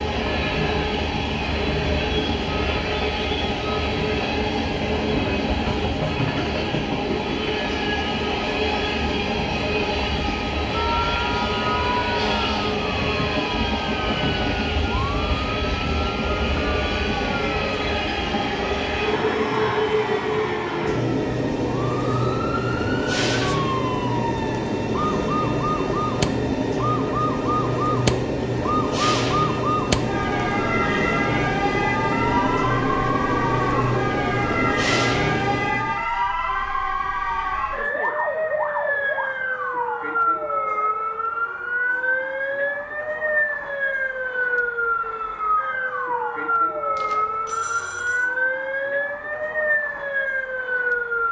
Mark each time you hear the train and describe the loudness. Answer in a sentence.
The train can be heard from 0.0 to 36.0 s, at a steady volume.